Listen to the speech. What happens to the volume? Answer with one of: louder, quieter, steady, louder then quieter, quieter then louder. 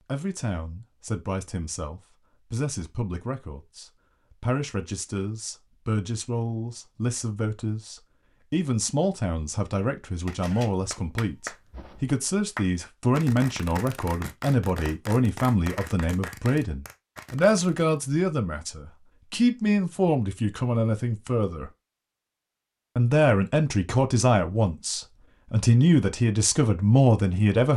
louder.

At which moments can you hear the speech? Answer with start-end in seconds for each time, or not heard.
0.1-21.7, 22.9-27.7.